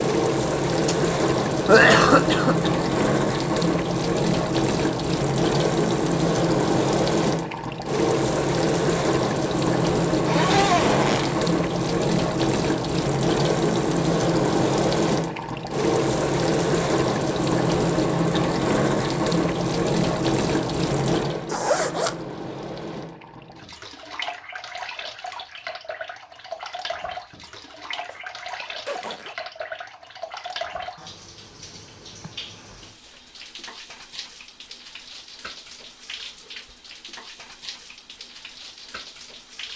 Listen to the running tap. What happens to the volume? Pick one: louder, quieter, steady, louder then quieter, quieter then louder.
quieter.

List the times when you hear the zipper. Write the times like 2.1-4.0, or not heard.
10.2-11.4, 21.4-22.2, 28.1-29.4.